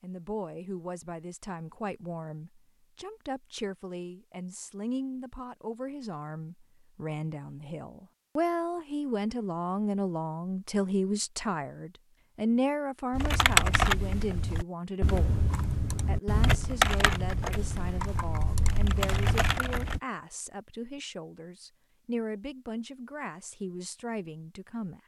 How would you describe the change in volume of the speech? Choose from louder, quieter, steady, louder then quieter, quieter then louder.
louder then quieter.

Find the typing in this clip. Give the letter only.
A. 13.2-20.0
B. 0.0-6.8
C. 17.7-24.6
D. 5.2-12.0
A.